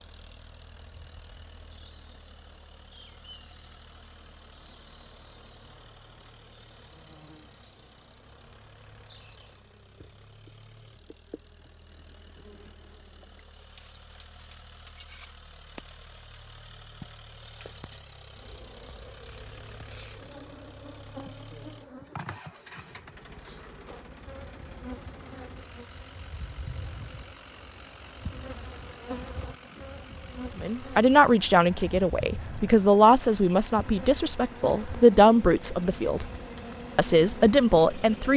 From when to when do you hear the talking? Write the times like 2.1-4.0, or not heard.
30.6-36.2, 37.0-38.3.